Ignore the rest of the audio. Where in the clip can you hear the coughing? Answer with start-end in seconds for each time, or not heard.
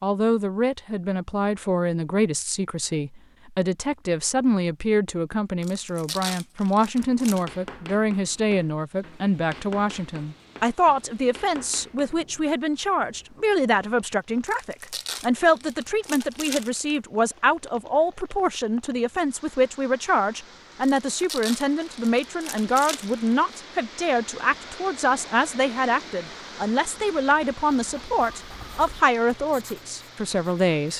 not heard.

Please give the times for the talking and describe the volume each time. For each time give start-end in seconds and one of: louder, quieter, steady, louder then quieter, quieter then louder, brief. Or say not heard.
0.0-30.9 steady.